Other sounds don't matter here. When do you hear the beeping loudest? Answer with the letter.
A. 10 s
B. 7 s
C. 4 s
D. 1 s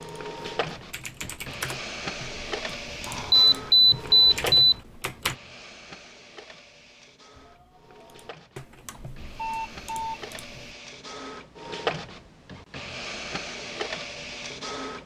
C.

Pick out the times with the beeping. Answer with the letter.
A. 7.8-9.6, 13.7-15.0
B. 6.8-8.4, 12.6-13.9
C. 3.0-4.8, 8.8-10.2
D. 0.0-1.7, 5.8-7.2
C.